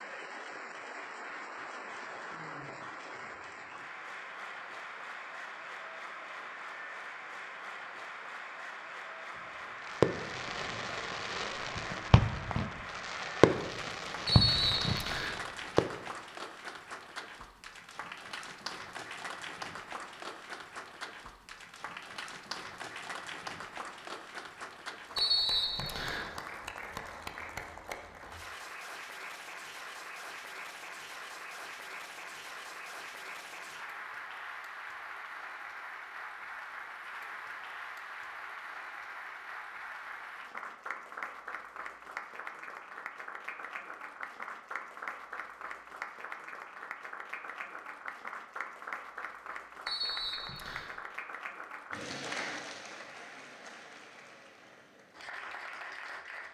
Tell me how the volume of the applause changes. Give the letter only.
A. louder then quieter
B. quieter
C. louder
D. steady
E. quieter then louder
D.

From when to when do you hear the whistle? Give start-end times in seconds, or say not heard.
14.2-15.4, 25.1-26.3, 49.9-50.9.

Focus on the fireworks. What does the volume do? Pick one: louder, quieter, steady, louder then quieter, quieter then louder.
louder then quieter.